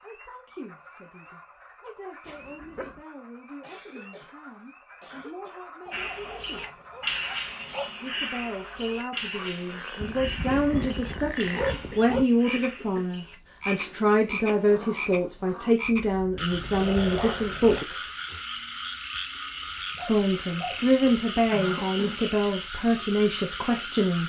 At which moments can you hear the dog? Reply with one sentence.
The dog can be heard from 2.2 to 3.0 s, from 5.8 to 7.9 s, from 10.0 to 12.2 s, from 16.5 to 17.9 s and from 19.8 to 21.1 s.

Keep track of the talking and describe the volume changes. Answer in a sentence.
The volume of the talking goes up.